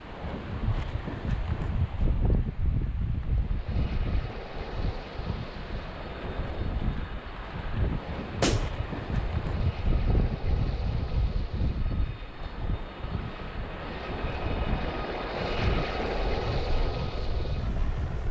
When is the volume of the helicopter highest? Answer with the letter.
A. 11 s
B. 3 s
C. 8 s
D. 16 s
D.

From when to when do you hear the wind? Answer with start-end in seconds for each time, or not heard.
0.0-18.2.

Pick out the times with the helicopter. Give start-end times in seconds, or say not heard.
3.2-18.2.